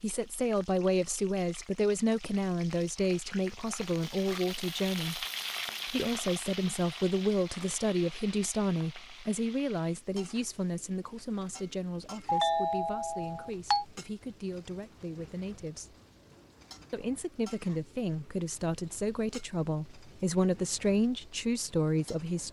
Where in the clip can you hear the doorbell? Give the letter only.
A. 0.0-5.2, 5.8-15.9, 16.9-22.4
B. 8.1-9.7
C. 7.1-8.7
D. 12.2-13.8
D.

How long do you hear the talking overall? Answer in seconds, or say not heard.
21 s.